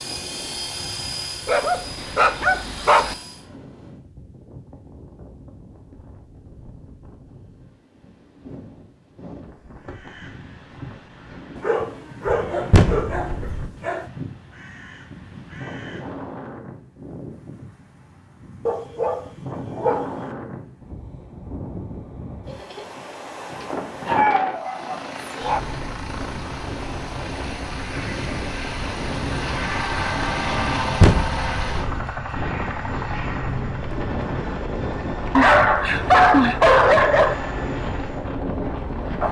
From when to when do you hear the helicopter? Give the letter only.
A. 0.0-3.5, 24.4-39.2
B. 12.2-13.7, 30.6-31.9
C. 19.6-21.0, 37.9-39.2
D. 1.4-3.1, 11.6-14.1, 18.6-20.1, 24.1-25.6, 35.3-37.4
A.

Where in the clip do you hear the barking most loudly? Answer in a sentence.
The volume of the barking peaks at 36 seconds.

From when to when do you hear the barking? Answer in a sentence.
The barking can be heard from 1.4 to 3.1 s, from 11.6 to 14.1 s, from 18.6 to 20.1 s, from 24.1 to 25.6 s and from 35.3 to 37.4 s.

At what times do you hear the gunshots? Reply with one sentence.
The gunshots can be heard from 12.2 to 13.7 s and from 30.6 to 31.9 s.